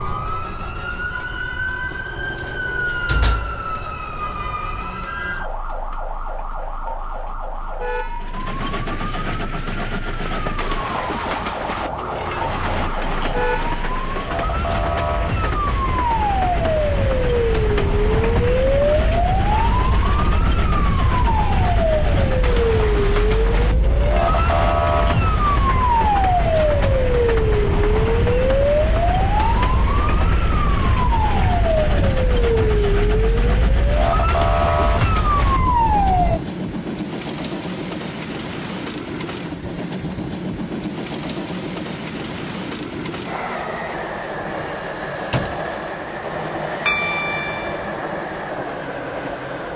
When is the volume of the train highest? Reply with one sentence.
The loudest moment of the train is at 47 seconds.